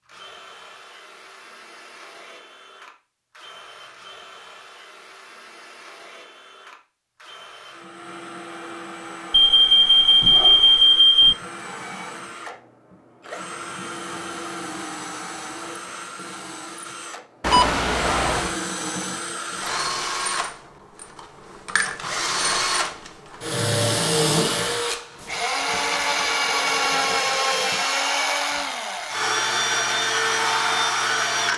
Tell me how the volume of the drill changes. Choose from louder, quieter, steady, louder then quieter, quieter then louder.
louder.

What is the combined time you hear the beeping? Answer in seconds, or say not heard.
3 s.